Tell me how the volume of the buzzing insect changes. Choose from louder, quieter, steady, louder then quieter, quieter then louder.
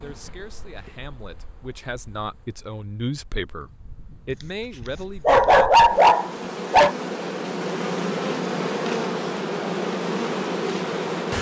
louder.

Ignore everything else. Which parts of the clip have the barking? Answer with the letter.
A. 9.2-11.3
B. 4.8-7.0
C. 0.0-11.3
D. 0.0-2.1
B.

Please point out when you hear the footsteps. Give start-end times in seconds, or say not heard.
not heard.